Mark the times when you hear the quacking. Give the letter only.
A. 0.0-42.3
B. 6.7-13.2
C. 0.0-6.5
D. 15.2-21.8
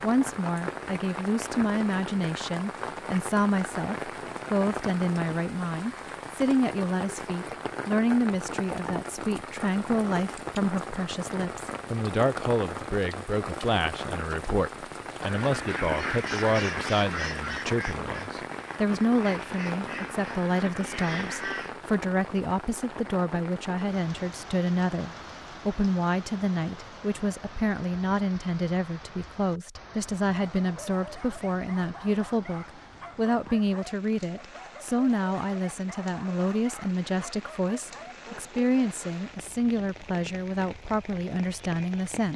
D.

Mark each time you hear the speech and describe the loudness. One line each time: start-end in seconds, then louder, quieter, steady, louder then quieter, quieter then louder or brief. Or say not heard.
0.0-42.3 steady.